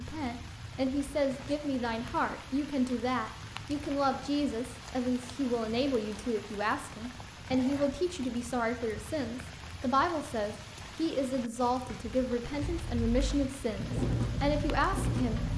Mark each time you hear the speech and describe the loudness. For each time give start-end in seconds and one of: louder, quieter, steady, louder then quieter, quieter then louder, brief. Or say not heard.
0.0-15.4 steady.